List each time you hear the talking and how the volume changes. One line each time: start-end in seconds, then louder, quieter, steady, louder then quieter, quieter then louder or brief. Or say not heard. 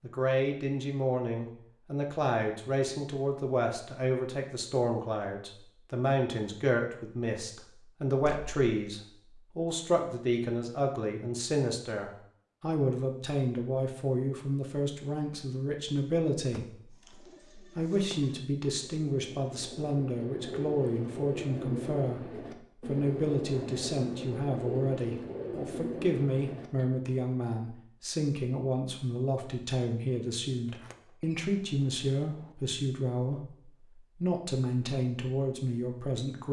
0.0-16.8 steady
17.6-33.5 steady
34.2-36.4 brief.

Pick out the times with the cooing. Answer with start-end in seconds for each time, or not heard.
16.9-27.1.